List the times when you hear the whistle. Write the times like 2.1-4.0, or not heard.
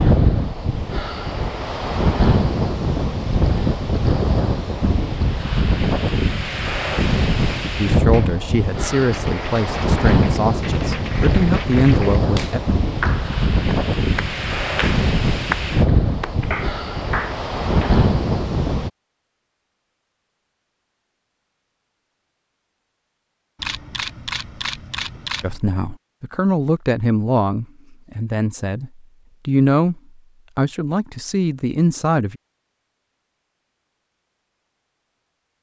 not heard.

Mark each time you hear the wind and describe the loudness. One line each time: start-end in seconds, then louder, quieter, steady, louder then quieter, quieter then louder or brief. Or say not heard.
0.0-18.9 steady.